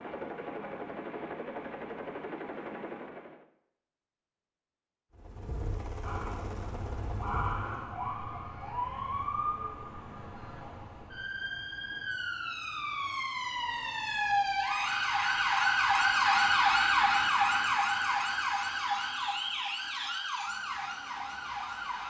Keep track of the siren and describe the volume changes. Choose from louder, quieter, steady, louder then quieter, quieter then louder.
louder then quieter.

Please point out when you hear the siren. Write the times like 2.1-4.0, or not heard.
6.0-22.0.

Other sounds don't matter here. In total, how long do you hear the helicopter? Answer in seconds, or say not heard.
6 s.